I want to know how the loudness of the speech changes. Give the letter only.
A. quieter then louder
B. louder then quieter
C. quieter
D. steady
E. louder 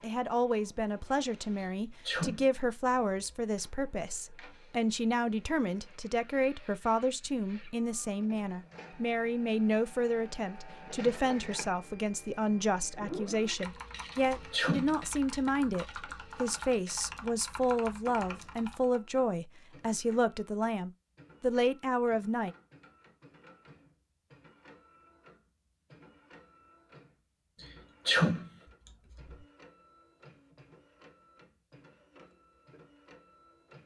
D.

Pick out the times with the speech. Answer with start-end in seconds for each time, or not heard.
0.0-22.5.